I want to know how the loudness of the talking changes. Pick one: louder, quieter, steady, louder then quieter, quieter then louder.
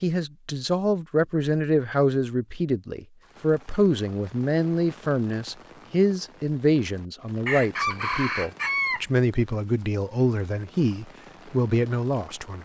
steady.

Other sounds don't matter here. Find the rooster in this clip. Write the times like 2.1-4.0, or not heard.
7.5-9.0.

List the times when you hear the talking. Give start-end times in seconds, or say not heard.
0.0-12.6.